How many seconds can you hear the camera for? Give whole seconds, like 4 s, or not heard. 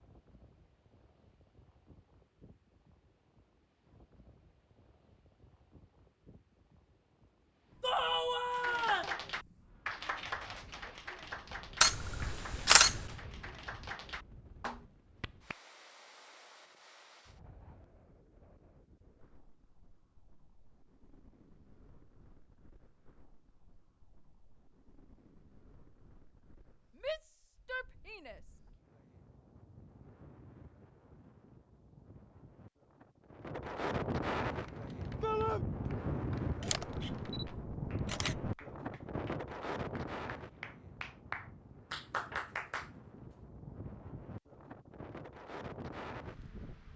3 s.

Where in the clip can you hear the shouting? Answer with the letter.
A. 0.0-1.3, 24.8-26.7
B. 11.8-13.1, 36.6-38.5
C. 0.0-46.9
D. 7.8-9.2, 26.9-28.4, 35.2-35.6
D.